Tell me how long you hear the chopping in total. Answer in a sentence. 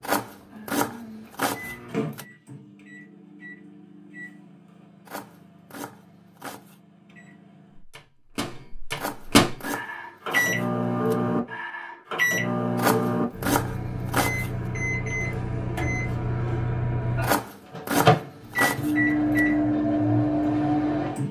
The chopping can be heard for 10 seconds in total.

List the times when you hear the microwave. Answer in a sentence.
You can hear the microwave from 0.2 to 21.2 s.